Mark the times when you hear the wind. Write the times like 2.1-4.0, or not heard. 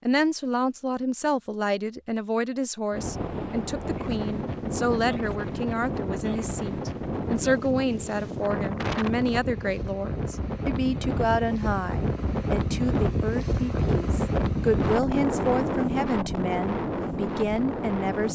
2.9-18.3.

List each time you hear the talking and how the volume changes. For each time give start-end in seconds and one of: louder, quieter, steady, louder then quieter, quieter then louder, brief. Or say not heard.
0.0-18.3 steady.